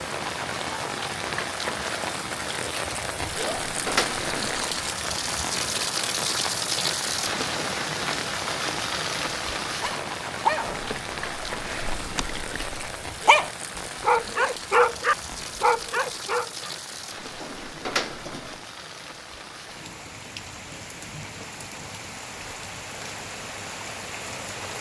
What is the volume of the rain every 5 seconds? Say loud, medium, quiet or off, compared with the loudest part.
loud, loud, medium, medium, medium.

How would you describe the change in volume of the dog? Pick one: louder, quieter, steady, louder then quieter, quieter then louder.
quieter then louder.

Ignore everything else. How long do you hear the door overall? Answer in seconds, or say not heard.
3 s.